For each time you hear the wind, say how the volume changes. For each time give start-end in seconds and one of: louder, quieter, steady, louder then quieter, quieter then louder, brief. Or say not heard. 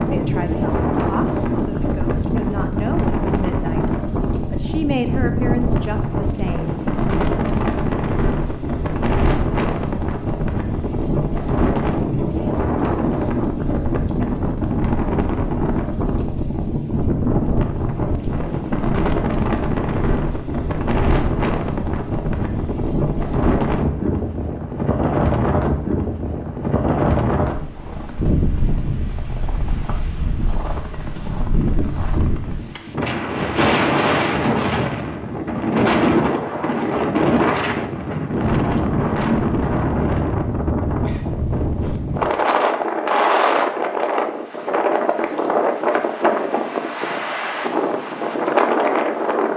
0.0-49.5 steady.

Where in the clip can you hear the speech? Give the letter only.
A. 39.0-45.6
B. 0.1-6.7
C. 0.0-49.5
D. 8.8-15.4
B.